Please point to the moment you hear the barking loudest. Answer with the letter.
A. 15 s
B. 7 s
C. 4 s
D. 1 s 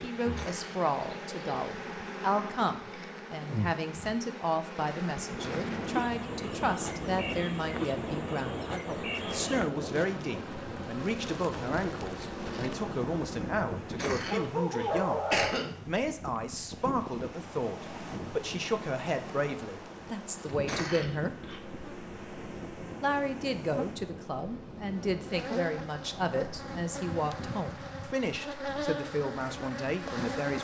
A.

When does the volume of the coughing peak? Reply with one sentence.
The loudest moment of the coughing is at 15 seconds.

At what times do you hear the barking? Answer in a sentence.
You can hear the barking from 13.6 to 15.5 s.